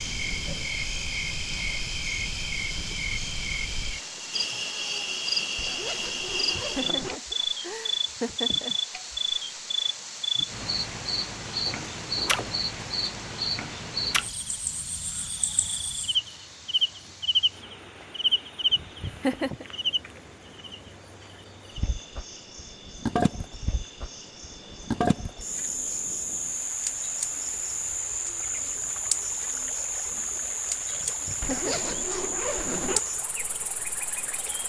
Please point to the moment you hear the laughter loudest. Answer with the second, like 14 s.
19 s.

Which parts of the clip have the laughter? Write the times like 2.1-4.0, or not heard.
6.2-8.8, 18.7-19.6, 31.0-31.9.